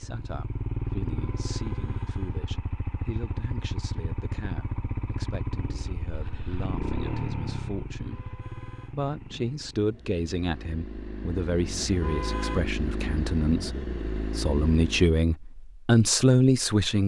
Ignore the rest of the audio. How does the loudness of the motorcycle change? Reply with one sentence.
The loudness of the motorcycle goes down, then up.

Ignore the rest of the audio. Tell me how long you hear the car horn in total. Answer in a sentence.
You can hear the car horn for 3 seconds altogether.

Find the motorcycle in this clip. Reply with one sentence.
The motorcycle can be heard from 0.0 to 15.2 s.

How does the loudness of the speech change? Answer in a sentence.
The volume of the speech goes up.